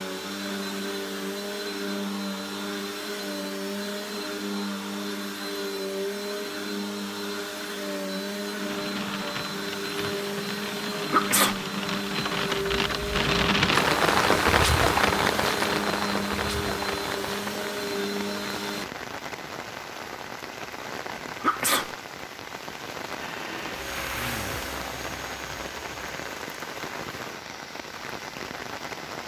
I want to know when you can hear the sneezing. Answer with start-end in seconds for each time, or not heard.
11.1-11.6, 21.4-21.9.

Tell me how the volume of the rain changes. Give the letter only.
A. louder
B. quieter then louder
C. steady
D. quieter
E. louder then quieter
E.